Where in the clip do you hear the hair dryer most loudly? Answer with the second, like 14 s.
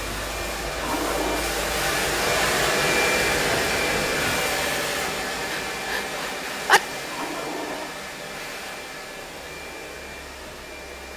3 s.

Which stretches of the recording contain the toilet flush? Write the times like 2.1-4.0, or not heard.
0.8-1.4, 7.0-8.0.